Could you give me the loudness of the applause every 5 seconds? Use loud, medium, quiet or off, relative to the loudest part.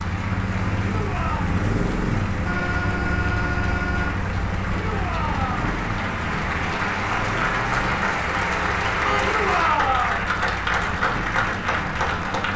medium, loud, loud.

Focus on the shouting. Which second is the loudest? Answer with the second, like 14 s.
10 s.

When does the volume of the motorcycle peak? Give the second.
2 s.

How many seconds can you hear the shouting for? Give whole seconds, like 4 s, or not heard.
3 s.